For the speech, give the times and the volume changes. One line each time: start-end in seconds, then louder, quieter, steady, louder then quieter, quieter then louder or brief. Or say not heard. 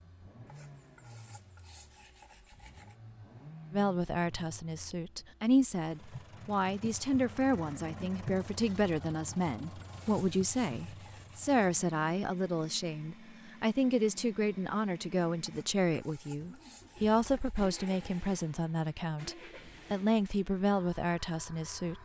3.7-21.9 steady.